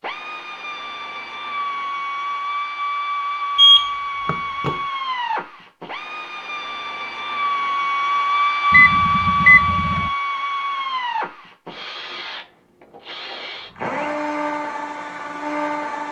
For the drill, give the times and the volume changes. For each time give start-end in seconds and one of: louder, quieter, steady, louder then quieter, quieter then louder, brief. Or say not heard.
0.0-16.0 louder then quieter.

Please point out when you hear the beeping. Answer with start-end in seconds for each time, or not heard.
3.5-4.8, 8.7-10.1.